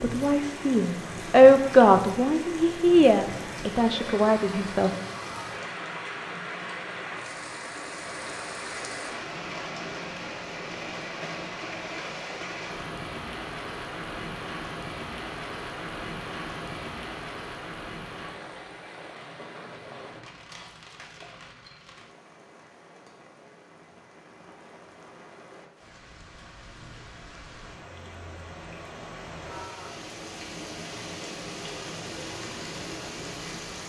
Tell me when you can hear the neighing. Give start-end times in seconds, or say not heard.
not heard.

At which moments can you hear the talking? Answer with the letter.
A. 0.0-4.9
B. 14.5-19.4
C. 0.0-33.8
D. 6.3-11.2
A.